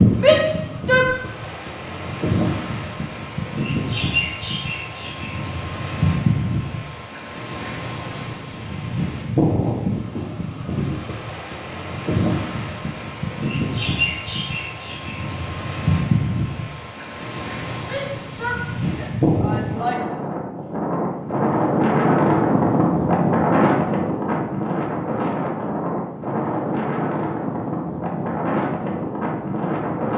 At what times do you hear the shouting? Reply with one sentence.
The shouting can be heard from 0.2 to 1.1 s and from 17.8 to 20.0 s.